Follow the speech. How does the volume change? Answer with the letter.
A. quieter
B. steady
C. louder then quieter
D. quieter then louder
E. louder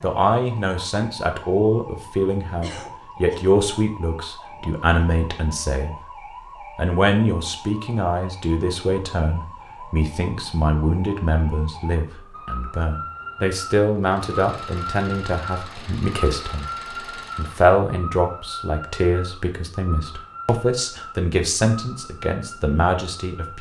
B.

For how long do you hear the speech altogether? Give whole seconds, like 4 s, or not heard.
23 s.